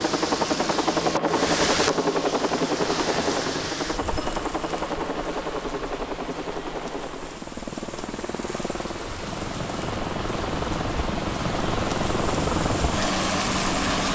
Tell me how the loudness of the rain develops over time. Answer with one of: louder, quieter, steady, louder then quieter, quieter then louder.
quieter then louder.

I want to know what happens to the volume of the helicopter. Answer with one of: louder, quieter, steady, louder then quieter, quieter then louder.
quieter then louder.